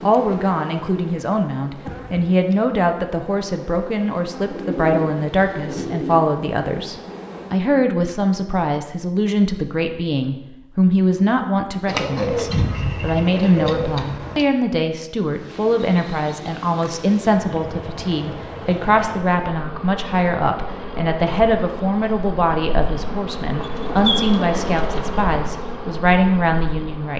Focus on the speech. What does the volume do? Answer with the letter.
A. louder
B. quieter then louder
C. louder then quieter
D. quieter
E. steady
E.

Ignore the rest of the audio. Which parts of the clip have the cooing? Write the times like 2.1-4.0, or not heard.
4.5-6.2, 11.8-14.4, 23.6-25.1.